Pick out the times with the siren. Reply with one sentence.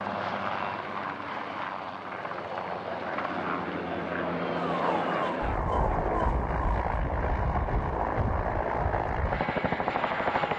You can hear the siren from 4.5 to 7.0 s.